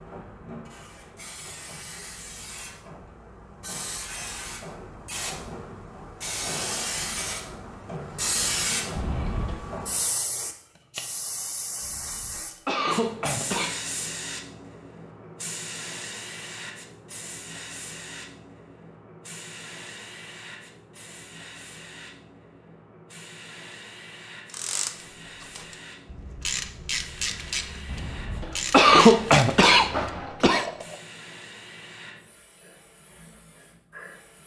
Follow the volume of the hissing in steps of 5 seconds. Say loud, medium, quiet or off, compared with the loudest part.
medium, loud, loud, medium, quiet, quiet, quiet.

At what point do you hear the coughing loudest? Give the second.
29 s.